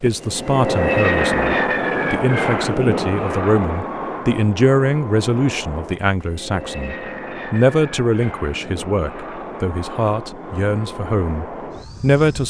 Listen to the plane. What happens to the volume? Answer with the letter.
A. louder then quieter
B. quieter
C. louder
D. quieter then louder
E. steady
B.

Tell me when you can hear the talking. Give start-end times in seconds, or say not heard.
0.0-12.4.